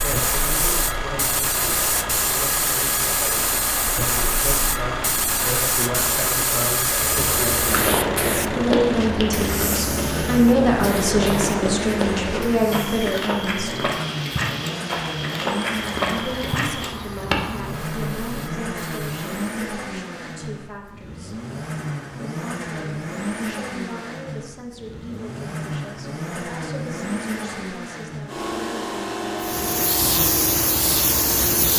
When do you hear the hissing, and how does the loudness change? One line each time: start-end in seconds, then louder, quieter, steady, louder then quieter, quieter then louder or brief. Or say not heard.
0.0-19.4 quieter
29.4-31.7 brief.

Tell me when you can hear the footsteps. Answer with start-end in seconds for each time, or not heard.
6.9-17.4.